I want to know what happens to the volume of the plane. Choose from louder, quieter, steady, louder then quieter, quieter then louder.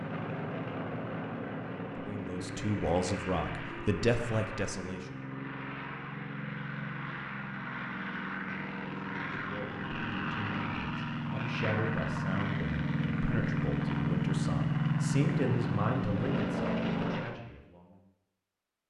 louder.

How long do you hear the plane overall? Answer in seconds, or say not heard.
17 s.